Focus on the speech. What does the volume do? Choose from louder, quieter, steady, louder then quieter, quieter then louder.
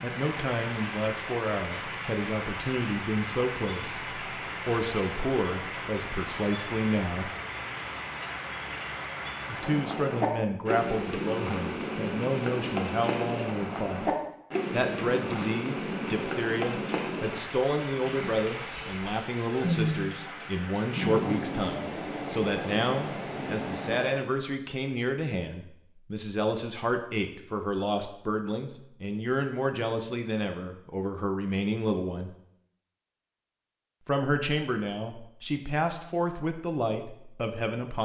steady.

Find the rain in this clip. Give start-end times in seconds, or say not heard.
0.0-24.2.